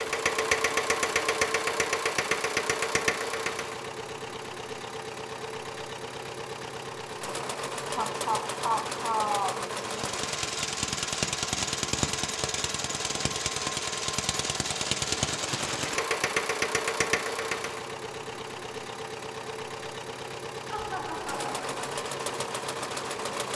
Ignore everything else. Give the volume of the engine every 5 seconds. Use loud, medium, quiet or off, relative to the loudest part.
loud, medium, loud, loud, medium.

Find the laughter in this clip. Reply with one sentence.
You can hear the laughter from 8.0 to 9.6 s and from 20.6 to 21.8 s.